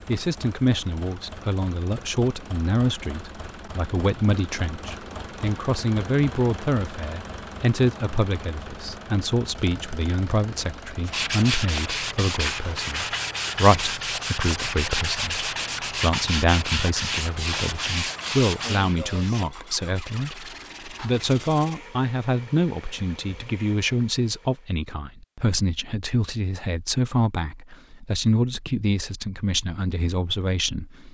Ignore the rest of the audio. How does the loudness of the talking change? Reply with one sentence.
The volume of the talking stays about the same.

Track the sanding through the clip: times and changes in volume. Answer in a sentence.
The sanding can be heard from 11.1 to 21.8 s, getting quieter.